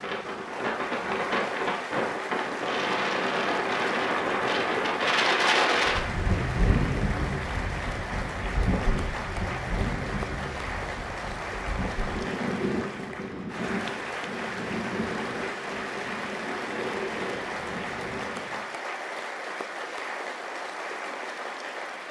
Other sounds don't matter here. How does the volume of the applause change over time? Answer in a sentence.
The volume of the applause stays about the same.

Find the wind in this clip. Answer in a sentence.
You can hear the wind from 0.0 to 18.6 s.